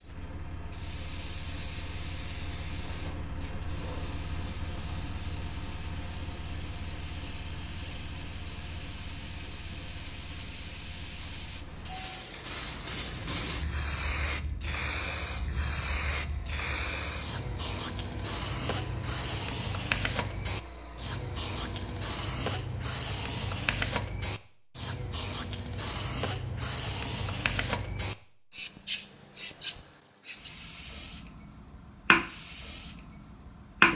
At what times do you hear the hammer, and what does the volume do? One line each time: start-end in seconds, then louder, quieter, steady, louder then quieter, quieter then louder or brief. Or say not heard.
not heard.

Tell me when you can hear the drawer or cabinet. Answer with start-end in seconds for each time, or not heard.
2.8-4.2.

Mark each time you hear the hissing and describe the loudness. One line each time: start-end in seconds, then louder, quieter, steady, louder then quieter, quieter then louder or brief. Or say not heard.
0.1-33.9 louder.